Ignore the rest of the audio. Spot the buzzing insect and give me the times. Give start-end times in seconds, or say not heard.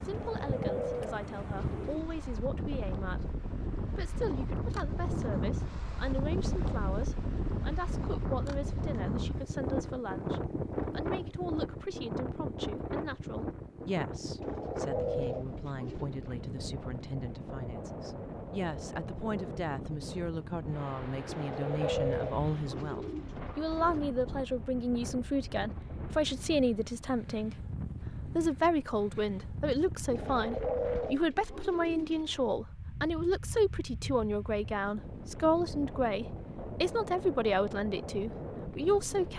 not heard.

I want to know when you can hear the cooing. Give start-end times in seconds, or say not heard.
0.1-2.1, 14.3-16.1, 21.2-24.1, 30.1-32.5.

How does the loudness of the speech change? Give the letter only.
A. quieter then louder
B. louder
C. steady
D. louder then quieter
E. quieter
B.